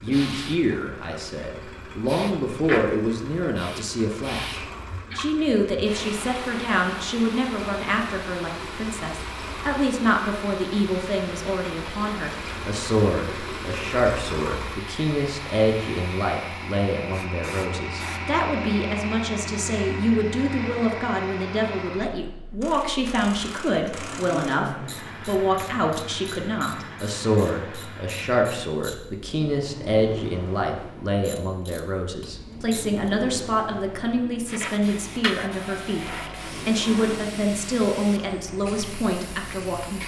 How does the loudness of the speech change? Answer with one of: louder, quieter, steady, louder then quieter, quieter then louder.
steady.